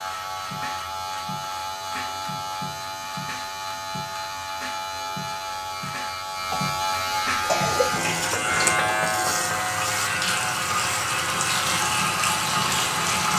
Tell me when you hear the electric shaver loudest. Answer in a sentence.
The loudest moment of the electric shaver is at 9 seconds.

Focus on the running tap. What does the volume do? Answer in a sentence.
The volume of the running tap goes up.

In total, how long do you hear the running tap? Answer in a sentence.
You can hear the running tap for 6 seconds altogether.